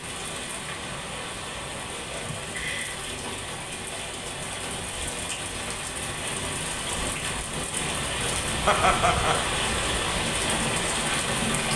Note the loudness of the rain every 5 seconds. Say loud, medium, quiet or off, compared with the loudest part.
medium, loud, loud.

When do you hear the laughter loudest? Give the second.
9 s.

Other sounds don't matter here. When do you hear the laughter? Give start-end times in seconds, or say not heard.
2.2-3.0, 8.7-9.4.